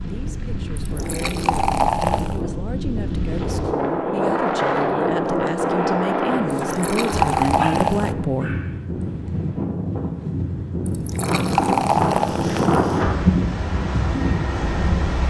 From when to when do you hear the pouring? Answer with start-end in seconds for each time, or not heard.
0.8-2.4, 6.7-8.2, 10.8-13.0.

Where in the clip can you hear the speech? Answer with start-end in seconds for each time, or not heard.
0.0-8.6.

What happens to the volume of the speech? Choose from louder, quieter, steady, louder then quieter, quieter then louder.
louder.